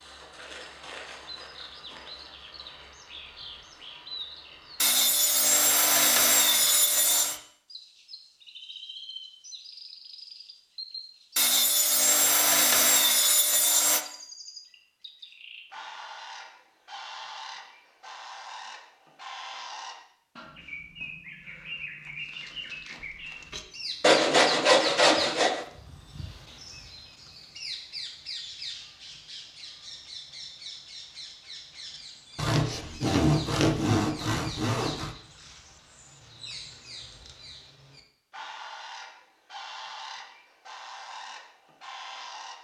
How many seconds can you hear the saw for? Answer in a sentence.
You can hear the saw for 10 seconds altogether.